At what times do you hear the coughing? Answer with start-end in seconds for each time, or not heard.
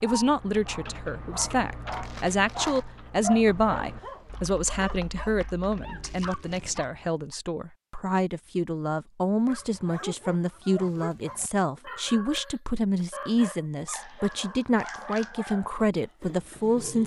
not heard.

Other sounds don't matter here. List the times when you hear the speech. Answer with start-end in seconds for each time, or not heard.
0.0-17.0.